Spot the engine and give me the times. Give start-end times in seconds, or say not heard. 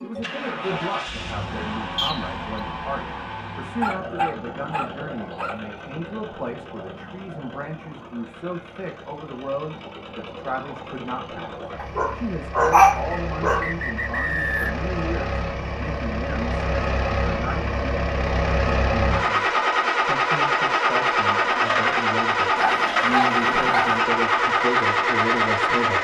0.0-25.9.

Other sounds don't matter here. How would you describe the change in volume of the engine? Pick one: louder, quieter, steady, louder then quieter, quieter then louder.
quieter then louder.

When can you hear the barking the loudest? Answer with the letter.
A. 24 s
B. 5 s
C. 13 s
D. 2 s
C.